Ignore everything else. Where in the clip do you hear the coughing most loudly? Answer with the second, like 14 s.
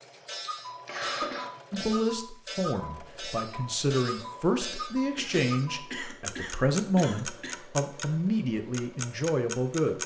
1 s.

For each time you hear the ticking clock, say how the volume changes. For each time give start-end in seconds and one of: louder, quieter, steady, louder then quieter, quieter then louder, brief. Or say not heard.
0.0-8.1 steady
8.7-10.0 brief.